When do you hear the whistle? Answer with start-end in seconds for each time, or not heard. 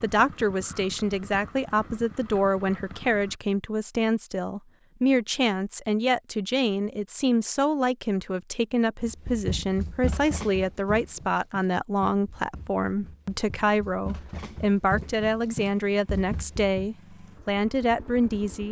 not heard.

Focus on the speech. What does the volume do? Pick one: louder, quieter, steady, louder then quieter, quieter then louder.
steady.